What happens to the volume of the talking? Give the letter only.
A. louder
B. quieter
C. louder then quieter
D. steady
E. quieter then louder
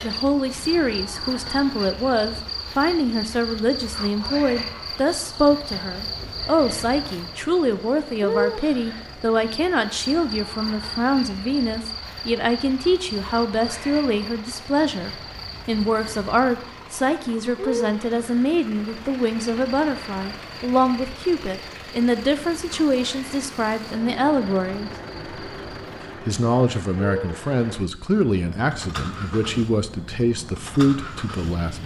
D.